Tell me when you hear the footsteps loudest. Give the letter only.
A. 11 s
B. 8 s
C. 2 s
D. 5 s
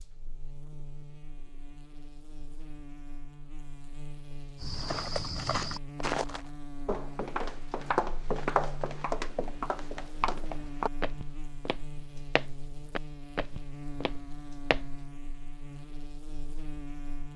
B.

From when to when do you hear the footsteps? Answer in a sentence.
The footsteps can be heard from 4.6 to 15.1 s.